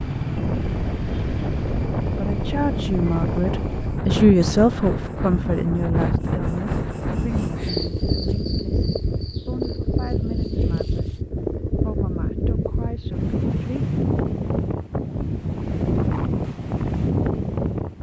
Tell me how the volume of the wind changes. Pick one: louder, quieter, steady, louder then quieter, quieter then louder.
steady.